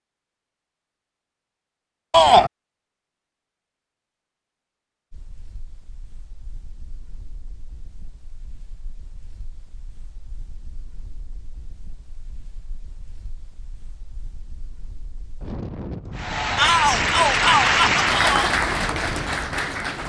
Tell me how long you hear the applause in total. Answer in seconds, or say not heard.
4 s.